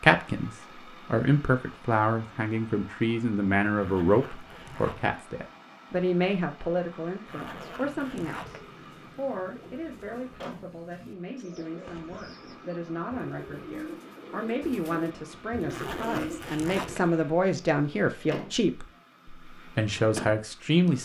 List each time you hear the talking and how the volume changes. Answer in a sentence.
You can hear the talking from 0.0 to 20.9 s, getting quieter then louder.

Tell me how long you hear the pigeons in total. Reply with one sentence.
You can hear the pigeons for 9 seconds altogether.